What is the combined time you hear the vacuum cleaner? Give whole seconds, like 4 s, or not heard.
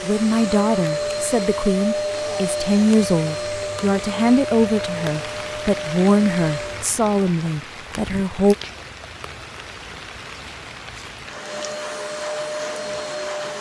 9 s.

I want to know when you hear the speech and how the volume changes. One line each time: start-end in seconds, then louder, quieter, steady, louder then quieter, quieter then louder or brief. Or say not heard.
0.0-8.6 steady.